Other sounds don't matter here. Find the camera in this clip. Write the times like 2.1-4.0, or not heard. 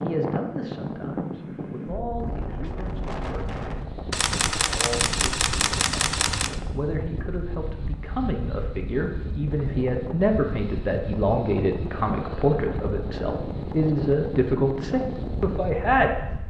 4.1-6.6.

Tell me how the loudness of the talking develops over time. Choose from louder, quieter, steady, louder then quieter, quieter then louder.
louder.